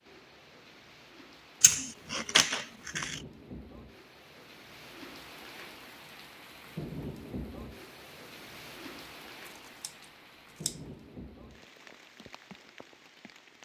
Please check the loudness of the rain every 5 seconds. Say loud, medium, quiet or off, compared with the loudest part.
medium, loud, medium.